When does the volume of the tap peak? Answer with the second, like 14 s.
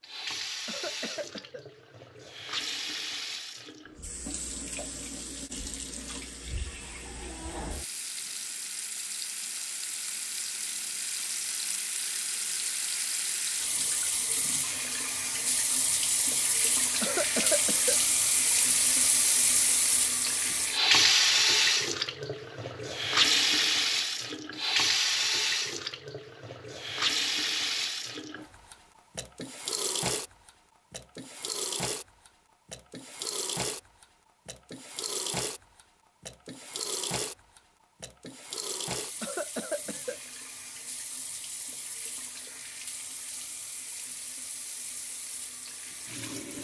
21 s.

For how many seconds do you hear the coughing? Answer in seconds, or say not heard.
3 s.